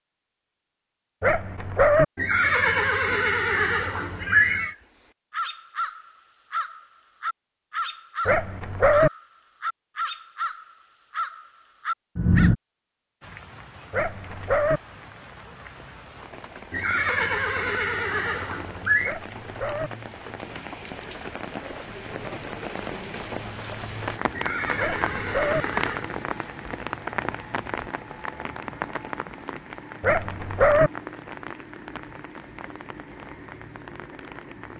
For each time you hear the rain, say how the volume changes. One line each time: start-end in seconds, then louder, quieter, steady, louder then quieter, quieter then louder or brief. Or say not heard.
13.2-34.7 louder then quieter.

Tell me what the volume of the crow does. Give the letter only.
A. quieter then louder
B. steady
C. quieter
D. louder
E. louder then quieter
B.